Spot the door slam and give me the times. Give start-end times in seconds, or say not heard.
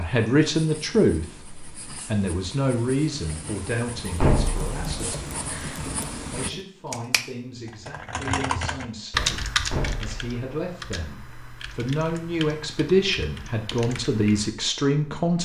4.2-5.2, 9.7-10.4.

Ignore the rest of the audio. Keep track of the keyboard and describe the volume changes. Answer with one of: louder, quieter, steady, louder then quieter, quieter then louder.
louder then quieter.